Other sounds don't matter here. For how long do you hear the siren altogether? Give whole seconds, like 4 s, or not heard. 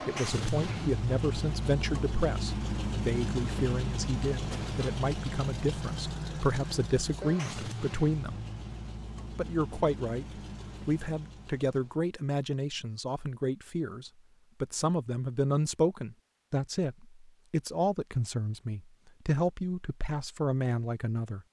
not heard.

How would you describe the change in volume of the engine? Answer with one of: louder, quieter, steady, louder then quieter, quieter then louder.
quieter.